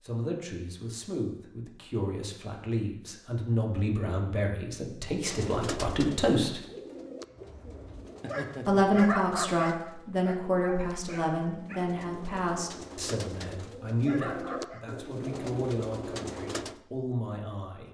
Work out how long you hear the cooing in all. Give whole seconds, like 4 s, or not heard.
12 s.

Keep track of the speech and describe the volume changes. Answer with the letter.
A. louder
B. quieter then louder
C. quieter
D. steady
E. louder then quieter
E.